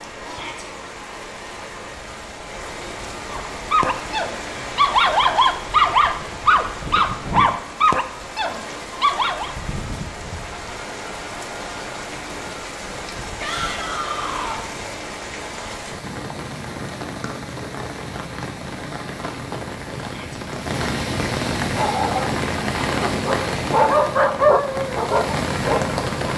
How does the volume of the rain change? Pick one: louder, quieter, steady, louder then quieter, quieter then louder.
louder.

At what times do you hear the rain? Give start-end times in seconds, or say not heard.
0.0-26.3.